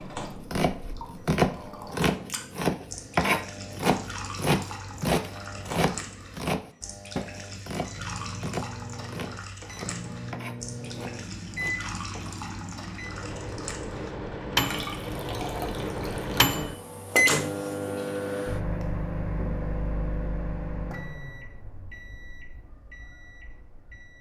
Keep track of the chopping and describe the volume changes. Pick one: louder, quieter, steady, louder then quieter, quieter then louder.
quieter.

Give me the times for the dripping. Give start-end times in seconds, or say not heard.
0.0-16.6.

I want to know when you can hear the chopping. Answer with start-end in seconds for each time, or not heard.
0.4-12.3.